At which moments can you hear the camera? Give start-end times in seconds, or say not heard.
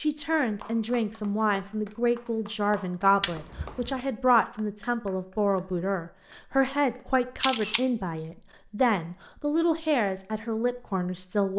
3.2-4.0, 7.4-7.8.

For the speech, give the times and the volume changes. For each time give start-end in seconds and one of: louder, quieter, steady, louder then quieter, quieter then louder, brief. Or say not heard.
0.0-11.5 steady.